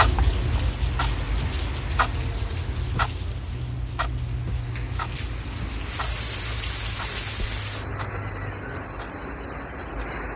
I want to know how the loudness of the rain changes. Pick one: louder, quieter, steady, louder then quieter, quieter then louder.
quieter then louder.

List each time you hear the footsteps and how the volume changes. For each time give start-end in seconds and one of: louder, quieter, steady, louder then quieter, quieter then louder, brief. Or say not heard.
not heard.